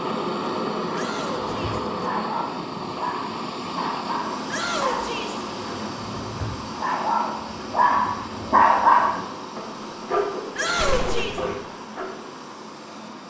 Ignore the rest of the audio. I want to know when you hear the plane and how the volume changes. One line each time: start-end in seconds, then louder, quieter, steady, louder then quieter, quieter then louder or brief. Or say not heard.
0.0-13.2 quieter.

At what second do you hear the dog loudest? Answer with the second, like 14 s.
9 s.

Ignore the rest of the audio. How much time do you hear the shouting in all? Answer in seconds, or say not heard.
3 s.